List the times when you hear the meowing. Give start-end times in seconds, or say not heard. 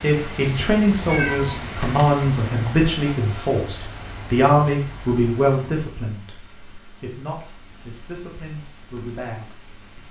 1.1-2.0.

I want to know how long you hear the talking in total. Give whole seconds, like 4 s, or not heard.
10 s.